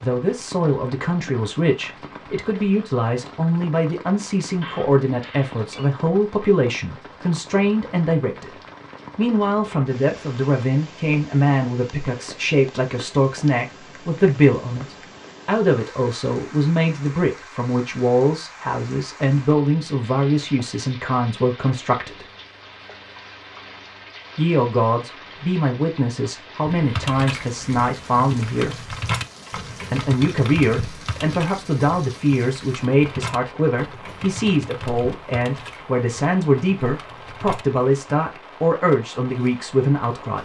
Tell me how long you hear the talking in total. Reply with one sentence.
The talking can be heard for 37 seconds in total.